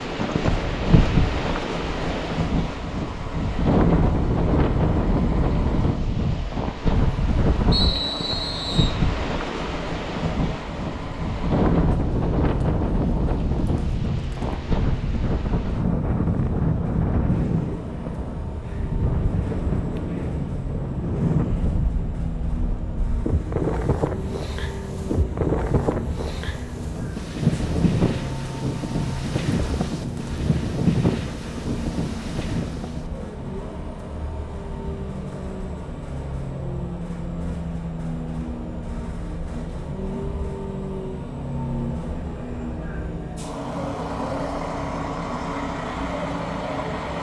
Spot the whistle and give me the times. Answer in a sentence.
You can hear the whistle from 7.7 to 8.9 s.